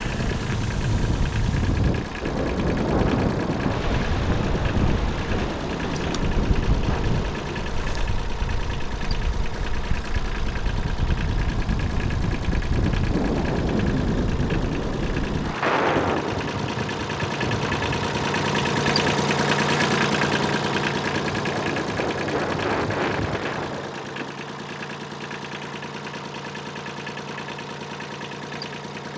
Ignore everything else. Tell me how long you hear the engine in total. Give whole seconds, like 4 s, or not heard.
29 s.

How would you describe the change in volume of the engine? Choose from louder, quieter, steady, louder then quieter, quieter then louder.
louder then quieter.